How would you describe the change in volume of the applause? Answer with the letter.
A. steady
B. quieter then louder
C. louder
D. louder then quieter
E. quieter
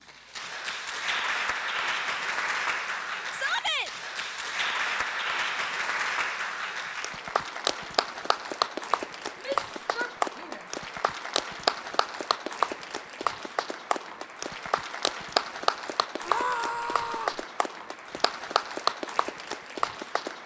A.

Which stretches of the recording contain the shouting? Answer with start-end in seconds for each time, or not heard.
3.3-3.9, 9.3-10.7, 16.2-17.4.